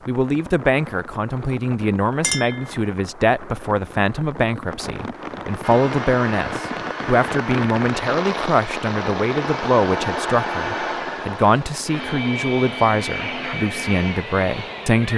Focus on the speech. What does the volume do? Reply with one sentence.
The volume of the speech stays about the same.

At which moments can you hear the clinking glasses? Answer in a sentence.
You can hear the clinking glasses from 2.2 to 2.7 s.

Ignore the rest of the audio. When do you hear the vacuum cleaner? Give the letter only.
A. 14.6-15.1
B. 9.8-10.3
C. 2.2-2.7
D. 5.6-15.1
D.